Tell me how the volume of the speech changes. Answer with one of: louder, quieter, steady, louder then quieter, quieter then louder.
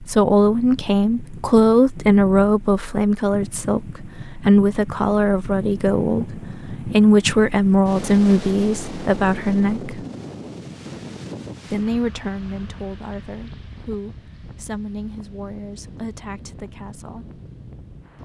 quieter.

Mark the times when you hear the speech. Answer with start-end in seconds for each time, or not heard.
0.0-10.1, 11.7-17.2.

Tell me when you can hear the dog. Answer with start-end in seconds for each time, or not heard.
not heard.